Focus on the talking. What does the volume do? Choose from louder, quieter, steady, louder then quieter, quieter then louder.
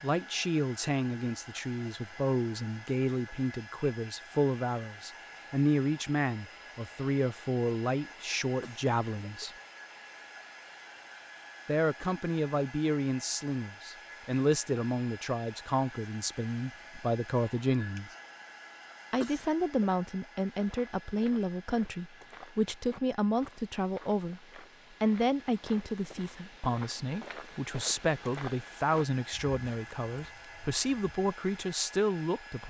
steady.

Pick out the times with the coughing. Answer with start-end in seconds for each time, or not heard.
8.6-9.4, 19.2-19.9.